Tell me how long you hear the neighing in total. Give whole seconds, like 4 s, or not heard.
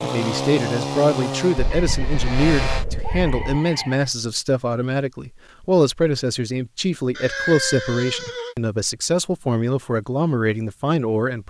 4 s.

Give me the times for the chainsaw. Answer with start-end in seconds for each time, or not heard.
0.0-2.9.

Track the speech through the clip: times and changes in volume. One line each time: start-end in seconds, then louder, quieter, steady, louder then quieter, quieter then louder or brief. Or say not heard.
0.0-11.4 steady.